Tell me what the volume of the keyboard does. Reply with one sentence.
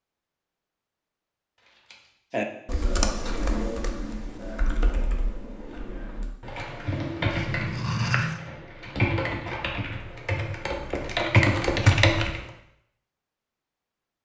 The loudness of the keyboard goes down, then up.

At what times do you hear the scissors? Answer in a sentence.
The scissors can be heard from 1.6 to 2.1 s and from 7.2 to 8.4 s.